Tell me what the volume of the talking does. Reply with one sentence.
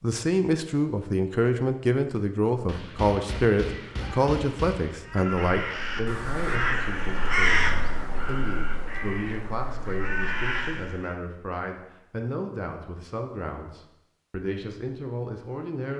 The loudness of the talking goes down.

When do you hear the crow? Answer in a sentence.
The crow can be heard from 5.0 to 11.2 s.